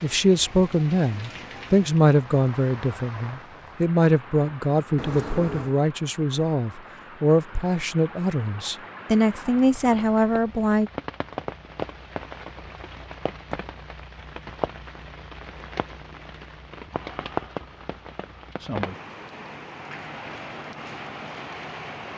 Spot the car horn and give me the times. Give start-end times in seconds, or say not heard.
5.0-5.8.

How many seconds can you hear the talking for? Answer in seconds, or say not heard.
11 s.